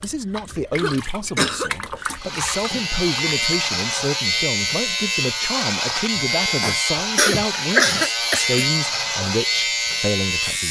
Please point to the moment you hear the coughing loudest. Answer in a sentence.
The loudest moment of the coughing is at 8 seconds.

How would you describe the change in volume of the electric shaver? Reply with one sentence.
The loudness of the electric shaver stays about the same.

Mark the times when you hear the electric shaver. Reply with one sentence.
You can hear the electric shaver from 2.1 to 10.6 s.